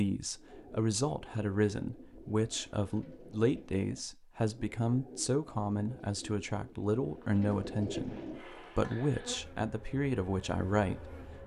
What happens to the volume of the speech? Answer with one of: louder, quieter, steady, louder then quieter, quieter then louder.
steady.